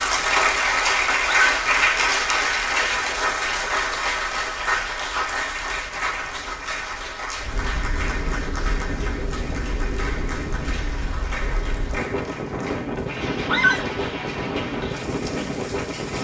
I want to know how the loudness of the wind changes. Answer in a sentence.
The volume of the wind goes up.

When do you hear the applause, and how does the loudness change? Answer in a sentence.
You can hear the applause from 0.0 to 16.1 s, getting quieter.